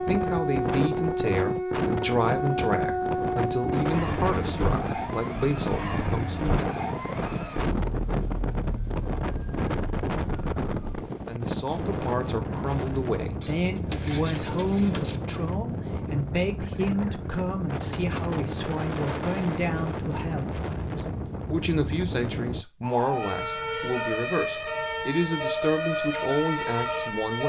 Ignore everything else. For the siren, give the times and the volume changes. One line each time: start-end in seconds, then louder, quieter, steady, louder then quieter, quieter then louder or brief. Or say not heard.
0.0-11.1 quieter
22.8-27.4 steady.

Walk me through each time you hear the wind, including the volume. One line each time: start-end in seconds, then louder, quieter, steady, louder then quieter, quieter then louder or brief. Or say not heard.
0.0-22.6 steady.